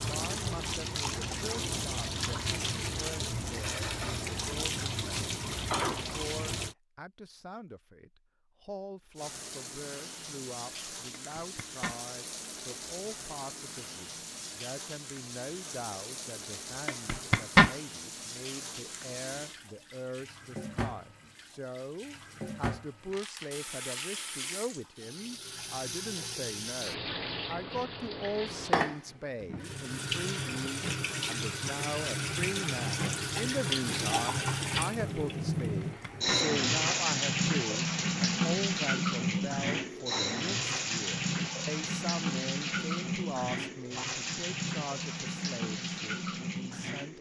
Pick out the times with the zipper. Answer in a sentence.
You can hear the zipper from 11.3 to 12.0 s, from 16.9 to 17.8 s and from 35.6 to 36.5 s.